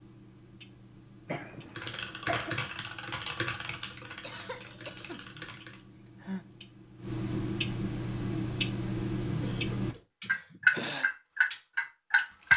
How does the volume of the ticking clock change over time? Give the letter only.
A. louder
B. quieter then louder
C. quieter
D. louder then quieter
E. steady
A.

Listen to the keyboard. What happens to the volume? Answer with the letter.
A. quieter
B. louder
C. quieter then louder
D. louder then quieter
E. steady
A.